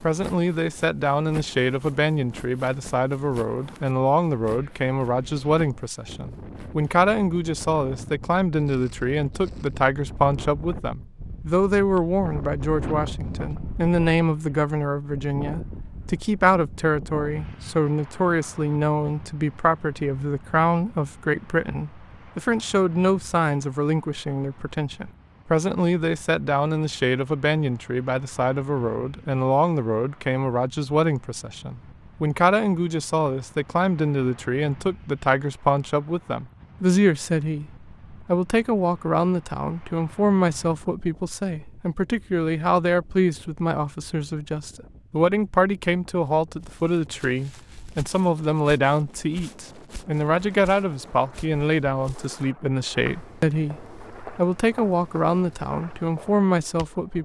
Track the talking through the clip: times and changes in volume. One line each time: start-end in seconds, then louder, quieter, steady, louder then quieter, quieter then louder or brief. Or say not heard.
0.0-57.1 steady.